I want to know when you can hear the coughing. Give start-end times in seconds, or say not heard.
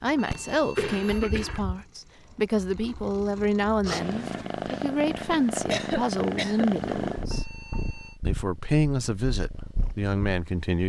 0.3-1.6, 5.7-6.7.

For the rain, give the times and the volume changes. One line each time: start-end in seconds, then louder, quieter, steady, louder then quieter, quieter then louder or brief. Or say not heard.
not heard.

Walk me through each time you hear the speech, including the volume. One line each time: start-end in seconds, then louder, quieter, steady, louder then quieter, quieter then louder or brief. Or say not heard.
0.0-7.5 steady
8.2-10.8 brief.